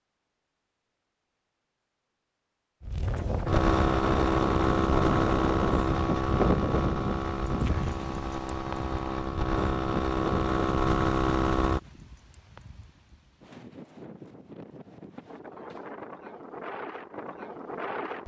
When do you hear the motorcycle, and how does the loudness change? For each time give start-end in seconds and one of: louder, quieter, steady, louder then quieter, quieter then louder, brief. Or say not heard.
3.5-11.8 quieter then louder.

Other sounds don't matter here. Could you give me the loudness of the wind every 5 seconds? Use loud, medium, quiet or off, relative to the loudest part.
loud, loud, medium, medium.